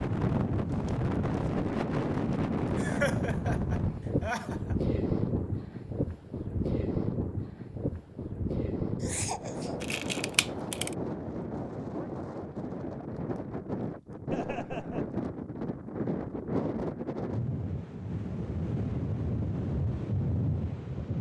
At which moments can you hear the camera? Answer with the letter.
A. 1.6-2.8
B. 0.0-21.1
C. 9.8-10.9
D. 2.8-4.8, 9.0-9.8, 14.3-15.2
C.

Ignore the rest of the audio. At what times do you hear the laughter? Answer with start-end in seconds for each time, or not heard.
2.8-4.8, 9.0-9.8, 14.3-15.2.